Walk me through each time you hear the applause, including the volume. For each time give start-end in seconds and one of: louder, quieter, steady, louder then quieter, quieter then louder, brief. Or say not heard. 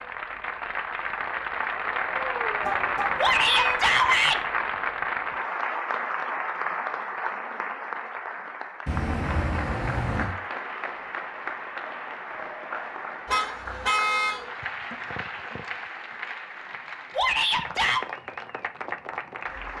0.0-19.7 quieter.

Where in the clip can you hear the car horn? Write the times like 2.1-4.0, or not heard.
2.6-3.8, 8.8-10.3, 13.2-14.4.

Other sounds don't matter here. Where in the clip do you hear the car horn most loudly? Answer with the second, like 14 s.
14 s.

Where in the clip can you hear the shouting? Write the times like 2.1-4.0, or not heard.
3.1-4.4, 17.1-18.0.